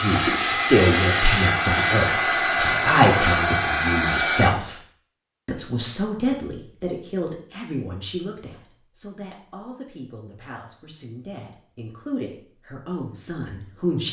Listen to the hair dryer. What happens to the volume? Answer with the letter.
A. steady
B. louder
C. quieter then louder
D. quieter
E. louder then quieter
A.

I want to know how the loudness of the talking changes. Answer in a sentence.
The loudness of the talking goes down, then up.